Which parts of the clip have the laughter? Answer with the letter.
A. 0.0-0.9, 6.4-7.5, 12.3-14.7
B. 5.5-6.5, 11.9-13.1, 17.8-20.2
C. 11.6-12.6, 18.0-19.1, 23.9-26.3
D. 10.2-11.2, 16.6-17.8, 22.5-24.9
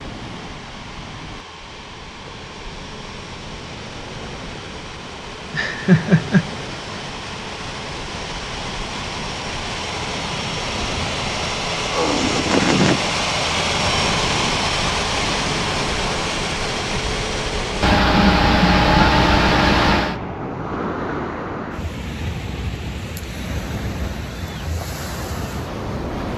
B.